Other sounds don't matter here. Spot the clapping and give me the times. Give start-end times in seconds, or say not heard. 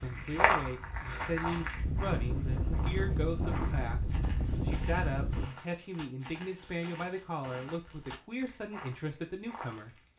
not heard.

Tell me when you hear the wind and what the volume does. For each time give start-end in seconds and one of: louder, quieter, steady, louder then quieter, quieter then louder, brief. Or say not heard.
0.0-5.5 louder.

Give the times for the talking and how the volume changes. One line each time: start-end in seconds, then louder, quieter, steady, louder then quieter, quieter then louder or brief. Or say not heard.
0.0-10.1 steady.